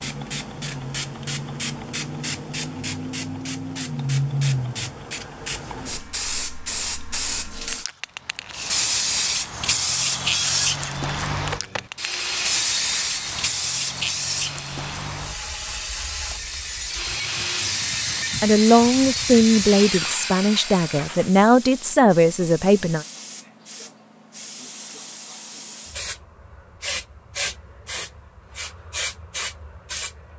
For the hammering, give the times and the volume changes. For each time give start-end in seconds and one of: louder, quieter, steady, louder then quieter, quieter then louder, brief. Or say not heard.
not heard.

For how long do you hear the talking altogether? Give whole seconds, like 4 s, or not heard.
5 s.